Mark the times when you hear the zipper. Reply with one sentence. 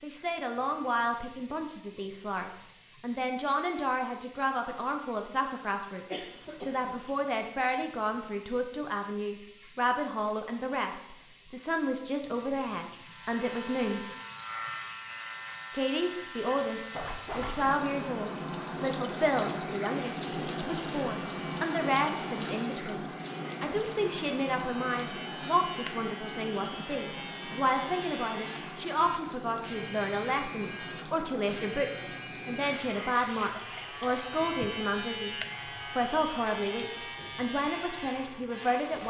You can hear the zipper from 16.9 to 17.8 s.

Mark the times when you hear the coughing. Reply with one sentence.
You can hear the coughing from 6.0 to 7.0 s.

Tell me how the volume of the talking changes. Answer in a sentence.
The loudness of the talking stays about the same.